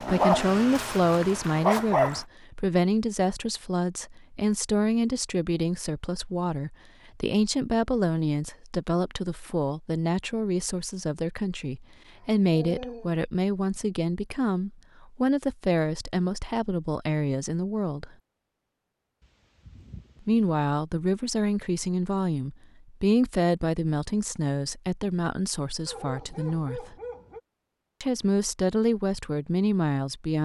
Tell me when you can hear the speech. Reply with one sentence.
The speech can be heard from 0.0 to 18.1 s, from 20.2 to 26.9 s and from 28.0 to 30.4 s.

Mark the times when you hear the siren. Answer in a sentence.
You can't hear the siren here.